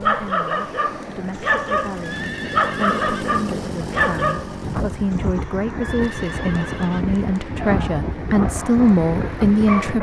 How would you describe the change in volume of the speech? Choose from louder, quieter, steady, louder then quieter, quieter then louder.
louder.